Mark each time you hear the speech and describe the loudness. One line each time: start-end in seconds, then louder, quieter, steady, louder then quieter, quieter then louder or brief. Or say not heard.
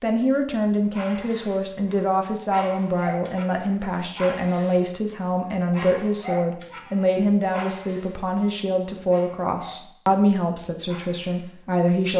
0.0-12.1 steady.